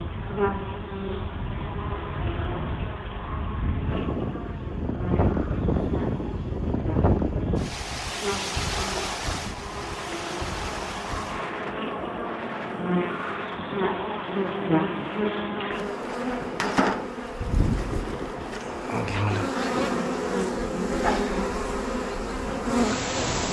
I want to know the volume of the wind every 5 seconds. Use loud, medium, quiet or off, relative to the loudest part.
medium, loud, medium, medium, quiet.